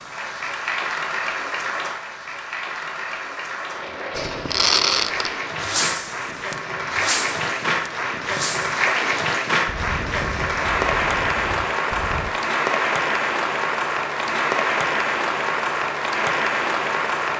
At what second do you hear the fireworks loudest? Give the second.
5 s.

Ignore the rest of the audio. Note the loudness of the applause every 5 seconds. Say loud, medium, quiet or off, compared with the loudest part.
medium, loud, loud, loud.